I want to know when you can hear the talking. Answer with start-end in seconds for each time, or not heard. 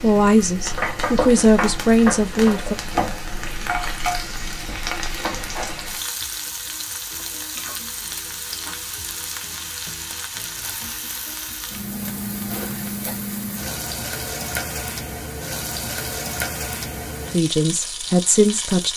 0.0-2.8, 17.3-18.9.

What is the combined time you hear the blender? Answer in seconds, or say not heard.
not heard.